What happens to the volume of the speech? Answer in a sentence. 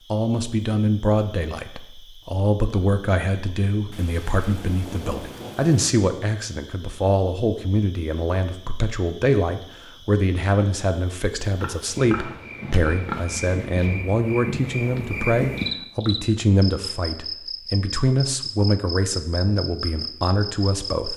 The volume of the speech stays about the same.